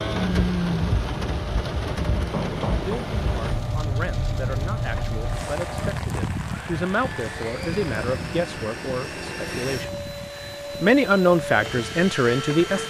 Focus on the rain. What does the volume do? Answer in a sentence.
The volume of the rain goes down.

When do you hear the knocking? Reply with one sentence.
The knocking can be heard from 2.1 to 3.0 s.